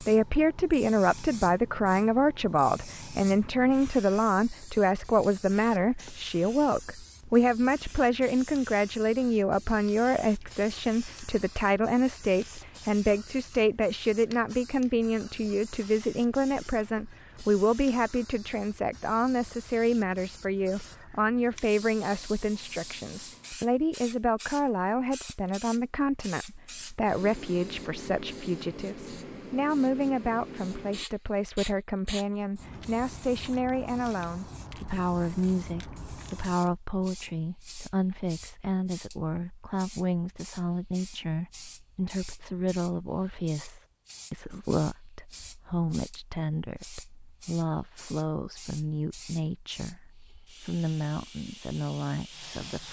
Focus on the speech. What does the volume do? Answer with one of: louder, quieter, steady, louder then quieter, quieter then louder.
quieter.